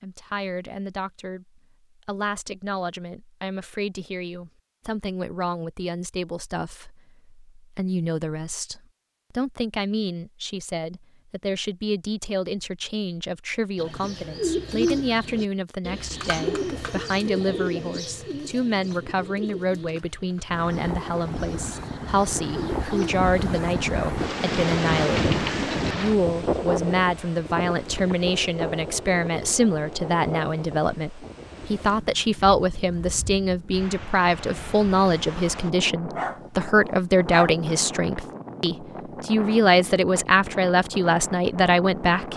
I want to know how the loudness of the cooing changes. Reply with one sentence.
The volume of the cooing goes down.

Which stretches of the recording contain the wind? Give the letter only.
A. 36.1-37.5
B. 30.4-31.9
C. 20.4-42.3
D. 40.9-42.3
C.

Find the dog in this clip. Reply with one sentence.
You can hear the dog from 36.1 to 37.5 s.